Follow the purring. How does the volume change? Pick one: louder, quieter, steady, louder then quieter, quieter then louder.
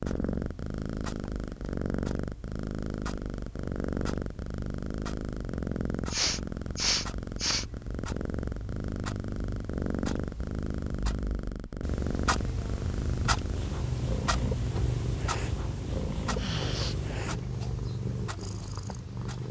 steady.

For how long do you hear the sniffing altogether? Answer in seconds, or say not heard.
2 s.